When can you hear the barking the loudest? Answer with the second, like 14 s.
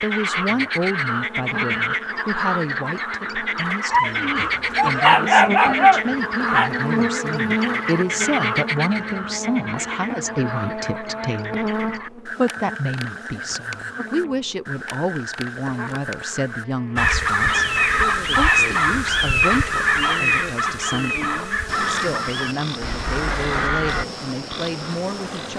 5 s.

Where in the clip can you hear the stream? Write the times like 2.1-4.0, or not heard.
not heard.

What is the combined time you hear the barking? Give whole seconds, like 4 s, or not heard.
3 s.